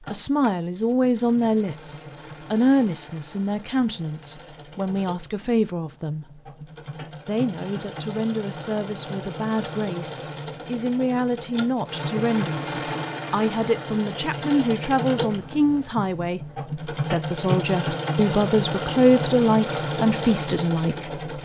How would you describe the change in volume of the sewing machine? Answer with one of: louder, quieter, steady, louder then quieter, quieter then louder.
louder.